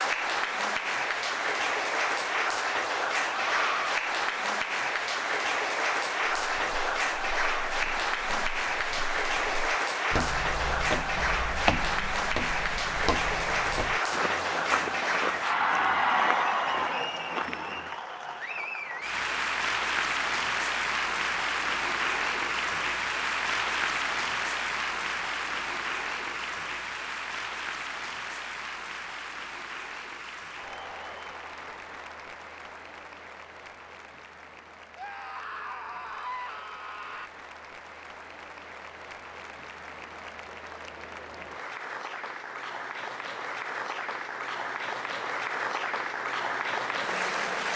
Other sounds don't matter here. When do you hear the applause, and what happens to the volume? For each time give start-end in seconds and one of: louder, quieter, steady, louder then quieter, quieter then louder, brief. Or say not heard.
0.0-47.7 quieter then louder.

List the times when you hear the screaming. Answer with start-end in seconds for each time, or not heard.
3.4-4.0, 35.0-37.3.